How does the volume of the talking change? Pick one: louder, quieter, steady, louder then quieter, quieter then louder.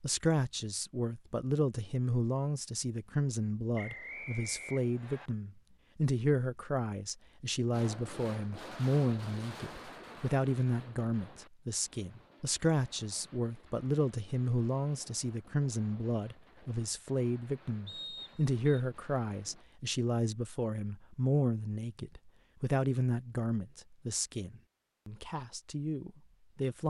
steady.